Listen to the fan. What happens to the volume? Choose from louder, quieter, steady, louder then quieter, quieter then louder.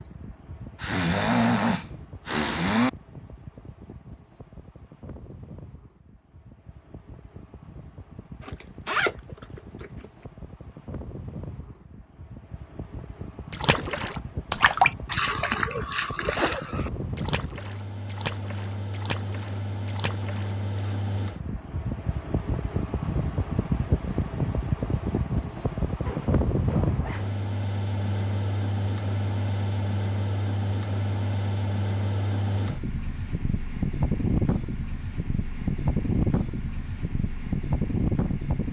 louder.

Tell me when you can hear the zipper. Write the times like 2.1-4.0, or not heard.
8.4-10.1, 26.1-27.4.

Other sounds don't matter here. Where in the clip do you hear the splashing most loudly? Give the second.
15 s.